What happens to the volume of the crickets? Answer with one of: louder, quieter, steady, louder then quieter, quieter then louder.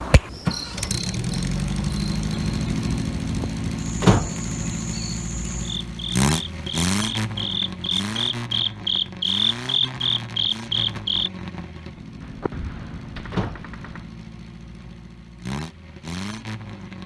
louder.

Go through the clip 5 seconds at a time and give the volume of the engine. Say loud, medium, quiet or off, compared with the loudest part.
loud, loud, medium, medium.